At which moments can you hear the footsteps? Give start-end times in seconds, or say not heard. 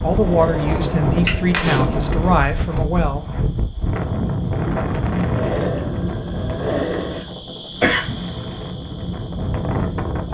not heard.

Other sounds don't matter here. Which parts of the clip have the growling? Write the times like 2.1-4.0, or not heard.
0.2-1.6, 5.3-7.3.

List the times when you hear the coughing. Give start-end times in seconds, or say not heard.
1.2-1.9, 7.8-8.2.